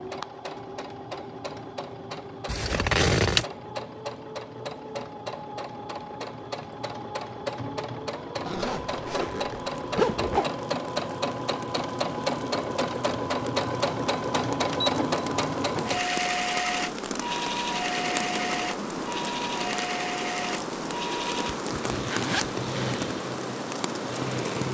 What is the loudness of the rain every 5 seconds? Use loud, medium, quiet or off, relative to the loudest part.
off, off, medium, loud, loud.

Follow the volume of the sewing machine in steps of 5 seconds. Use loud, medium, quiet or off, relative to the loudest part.
medium, medium, loud, loud, medium.